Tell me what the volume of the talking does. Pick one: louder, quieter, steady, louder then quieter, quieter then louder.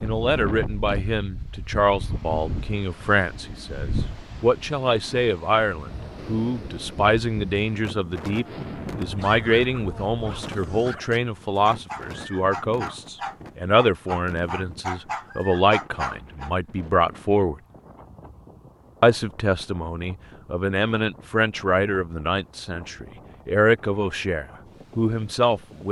steady.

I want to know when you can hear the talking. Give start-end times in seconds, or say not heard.
0.0-17.6, 19.0-25.8.